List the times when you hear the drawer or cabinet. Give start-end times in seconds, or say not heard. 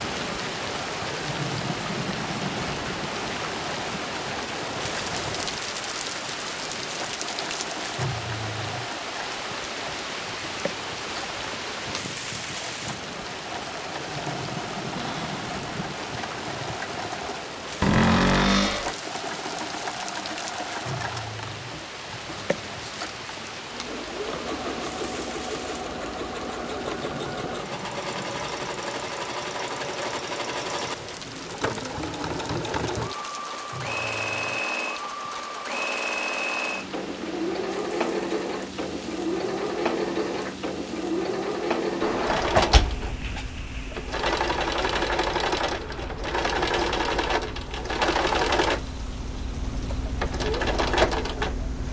14.9-15.4, 17.8-18.9, 42.0-43.5.